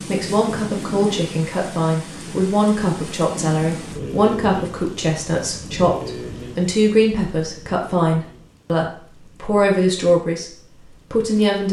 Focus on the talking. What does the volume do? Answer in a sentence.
The loudness of the talking stays about the same.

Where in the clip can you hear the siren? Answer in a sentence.
You can't hear the siren here.